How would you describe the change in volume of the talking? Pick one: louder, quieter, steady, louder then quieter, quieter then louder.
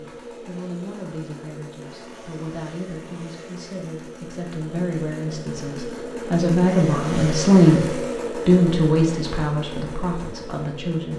louder then quieter.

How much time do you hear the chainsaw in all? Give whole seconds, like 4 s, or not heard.
11 s.